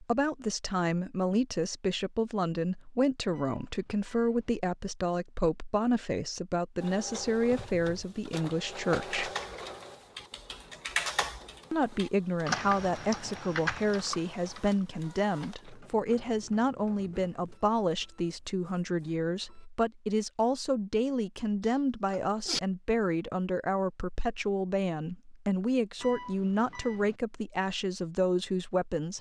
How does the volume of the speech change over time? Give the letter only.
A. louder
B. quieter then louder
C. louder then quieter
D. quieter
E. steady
E.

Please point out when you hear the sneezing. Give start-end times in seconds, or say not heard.
21.6-22.6.